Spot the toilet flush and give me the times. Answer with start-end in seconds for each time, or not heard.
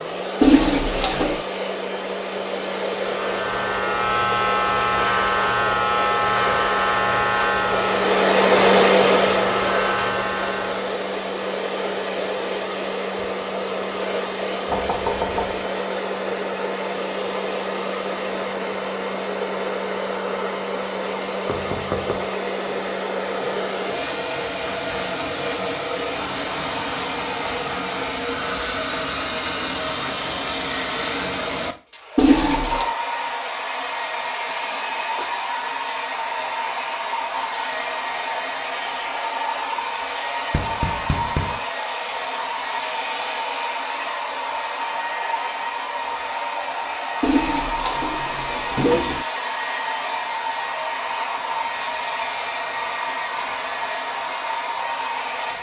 0.4-1.4, 32.1-32.9, 47.2-49.2.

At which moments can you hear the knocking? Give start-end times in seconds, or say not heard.
14.7-15.7, 21.4-22.3, 40.5-41.6.